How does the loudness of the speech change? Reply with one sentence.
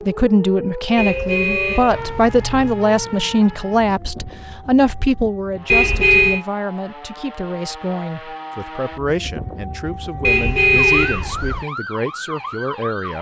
The loudness of the speech goes down.